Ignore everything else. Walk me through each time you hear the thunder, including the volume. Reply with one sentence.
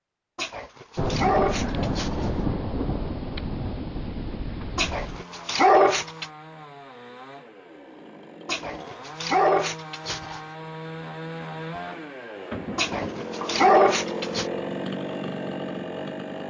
The thunder can be heard from 0.9 to 5.2 s, getting quieter.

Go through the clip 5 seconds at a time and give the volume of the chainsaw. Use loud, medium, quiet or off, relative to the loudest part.
off, medium, loud, loud.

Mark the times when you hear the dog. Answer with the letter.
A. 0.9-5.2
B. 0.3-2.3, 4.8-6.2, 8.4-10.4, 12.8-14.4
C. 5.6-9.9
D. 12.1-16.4
B.